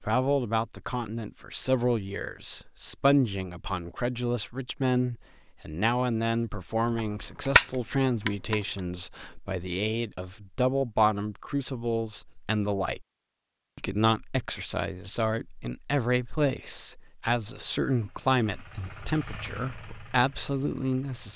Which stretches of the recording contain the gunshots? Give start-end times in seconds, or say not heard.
6.8-8.8.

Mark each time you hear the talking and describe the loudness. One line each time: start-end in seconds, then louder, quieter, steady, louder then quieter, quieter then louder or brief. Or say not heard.
0.0-13.1 steady
13.8-21.3 steady.